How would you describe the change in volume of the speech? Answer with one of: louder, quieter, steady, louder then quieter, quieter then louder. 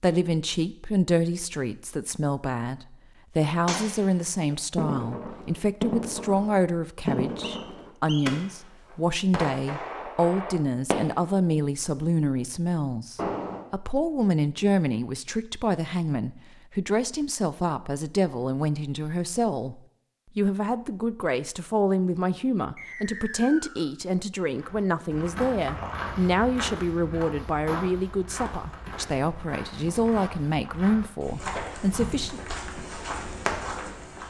steady.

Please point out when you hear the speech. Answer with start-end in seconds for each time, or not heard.
0.0-32.4.